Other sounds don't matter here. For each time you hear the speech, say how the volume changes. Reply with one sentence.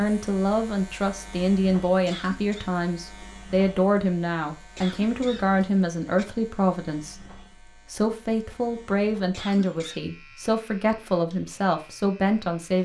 You can hear the speech from 0.0 to 12.8 s, at a steady volume.